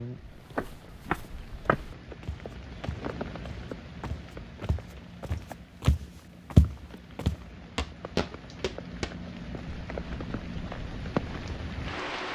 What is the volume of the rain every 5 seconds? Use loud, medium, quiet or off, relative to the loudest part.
medium, medium, loud.